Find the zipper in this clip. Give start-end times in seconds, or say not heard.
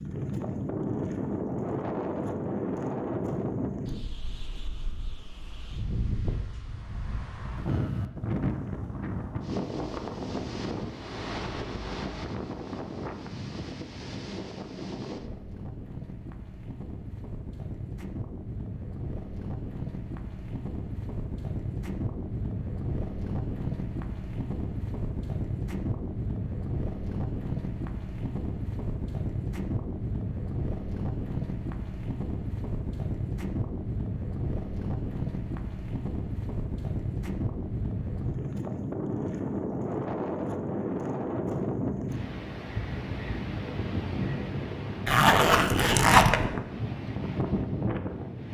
45.0-46.5.